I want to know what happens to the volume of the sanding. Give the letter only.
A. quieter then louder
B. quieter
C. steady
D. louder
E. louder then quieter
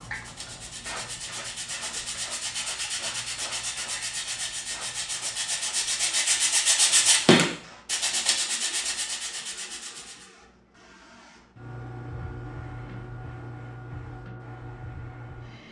E.